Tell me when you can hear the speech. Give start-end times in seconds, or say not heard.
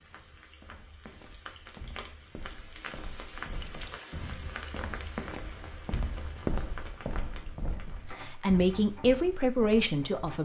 8.1-10.4.